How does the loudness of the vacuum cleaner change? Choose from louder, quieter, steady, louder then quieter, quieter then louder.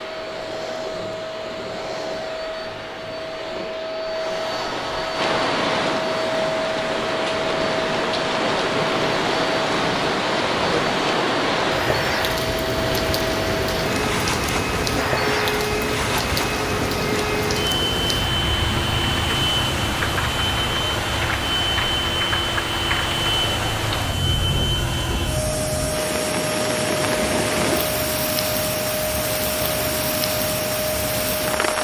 steady.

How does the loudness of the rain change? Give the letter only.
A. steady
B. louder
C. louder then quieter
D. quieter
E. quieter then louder
A.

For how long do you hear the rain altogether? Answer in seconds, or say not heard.
27 s.